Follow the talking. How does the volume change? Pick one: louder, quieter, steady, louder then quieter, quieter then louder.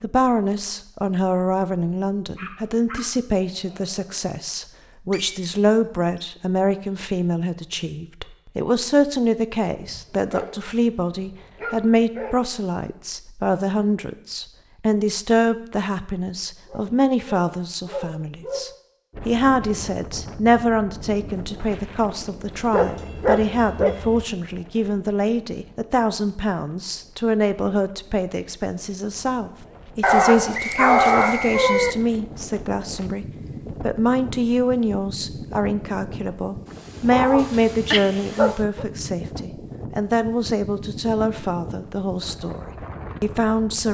steady.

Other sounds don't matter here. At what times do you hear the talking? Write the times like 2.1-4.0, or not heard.
0.0-43.8.